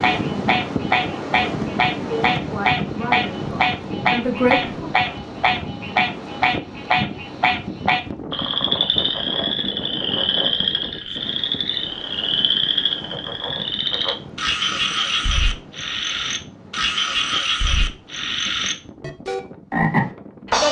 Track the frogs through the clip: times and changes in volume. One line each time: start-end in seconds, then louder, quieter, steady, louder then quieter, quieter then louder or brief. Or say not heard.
0.0-20.6 steady.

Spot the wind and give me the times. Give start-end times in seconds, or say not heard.
0.0-20.6.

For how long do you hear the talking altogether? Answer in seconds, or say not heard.
3 s.